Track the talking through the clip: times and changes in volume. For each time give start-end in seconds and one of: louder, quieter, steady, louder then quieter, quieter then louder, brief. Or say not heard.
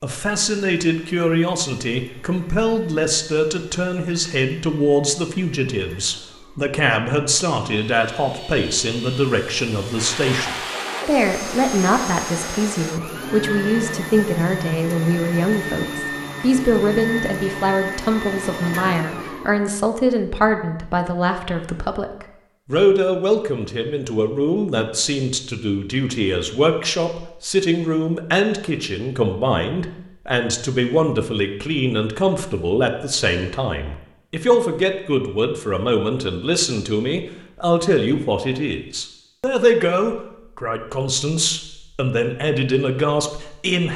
0.0-43.9 steady.